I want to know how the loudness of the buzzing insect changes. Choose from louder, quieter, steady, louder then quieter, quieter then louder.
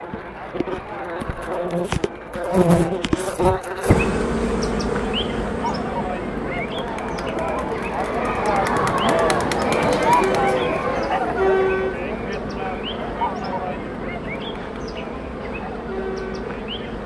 quieter.